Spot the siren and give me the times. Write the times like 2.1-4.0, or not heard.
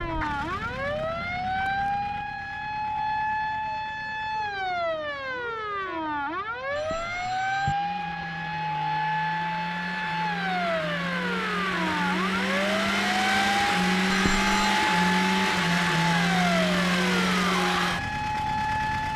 0.0-19.1.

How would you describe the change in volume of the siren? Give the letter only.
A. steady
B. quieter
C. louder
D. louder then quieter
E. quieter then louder
A.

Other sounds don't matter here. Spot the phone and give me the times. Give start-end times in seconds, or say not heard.
6.8-7.8, 14.1-14.8.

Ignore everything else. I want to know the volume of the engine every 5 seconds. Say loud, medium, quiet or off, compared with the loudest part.
quiet, quiet, loud, loud.